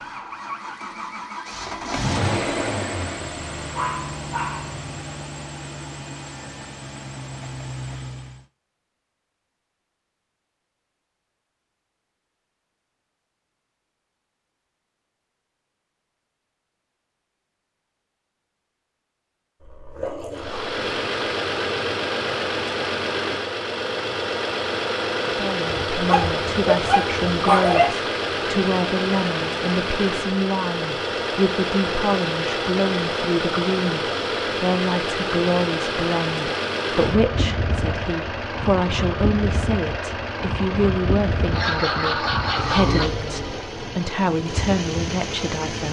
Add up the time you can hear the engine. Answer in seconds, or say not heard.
34 s.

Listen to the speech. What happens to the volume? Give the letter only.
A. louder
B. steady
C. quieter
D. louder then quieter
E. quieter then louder
B.